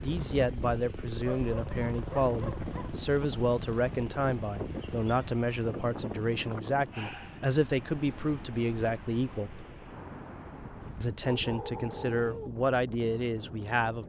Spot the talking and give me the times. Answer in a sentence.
You can hear the talking from 0.0 to 9.7 s and from 11.0 to 14.0 s.